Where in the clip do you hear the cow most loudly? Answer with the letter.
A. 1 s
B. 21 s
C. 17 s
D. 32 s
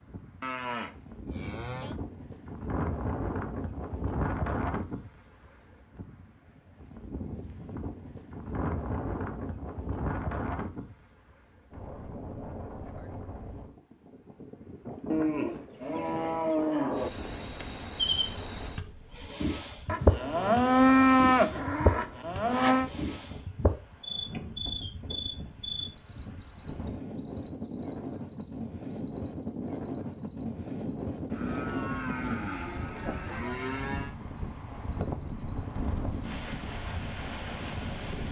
B.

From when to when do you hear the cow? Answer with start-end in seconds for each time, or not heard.
0.4-1.9, 15.1-17.1, 19.9-22.9, 31.3-34.1.